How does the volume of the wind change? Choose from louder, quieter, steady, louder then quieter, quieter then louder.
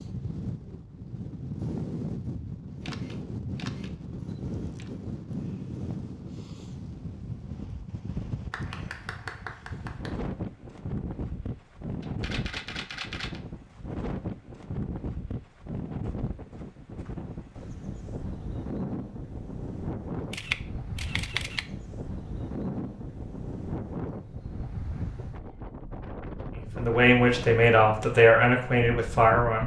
steady.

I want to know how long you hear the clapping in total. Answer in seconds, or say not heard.
2 s.